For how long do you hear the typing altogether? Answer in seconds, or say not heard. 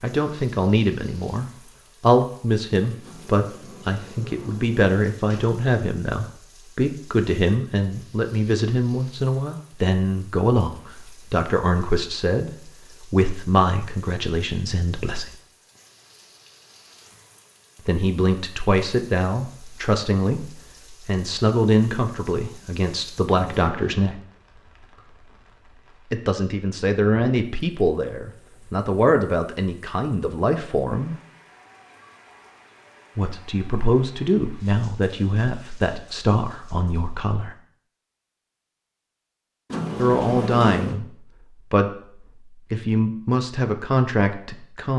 not heard.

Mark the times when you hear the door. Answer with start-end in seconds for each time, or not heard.
3.0-5.5, 23.3-24.1, 39.7-41.0.